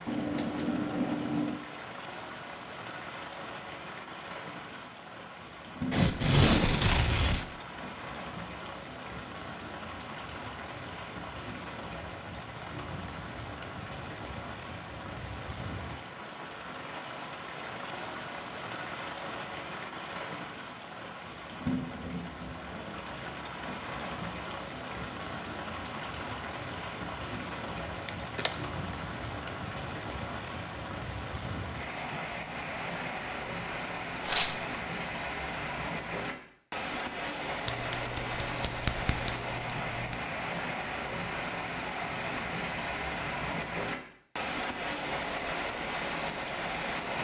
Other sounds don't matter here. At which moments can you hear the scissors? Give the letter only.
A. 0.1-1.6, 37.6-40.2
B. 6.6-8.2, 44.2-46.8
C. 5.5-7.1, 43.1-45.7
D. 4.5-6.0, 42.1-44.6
A.